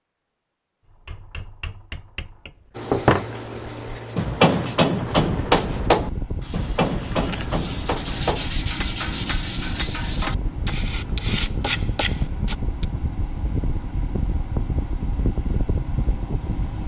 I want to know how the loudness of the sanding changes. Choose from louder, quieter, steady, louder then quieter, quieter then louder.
louder.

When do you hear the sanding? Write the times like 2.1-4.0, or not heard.
2.7-12.8.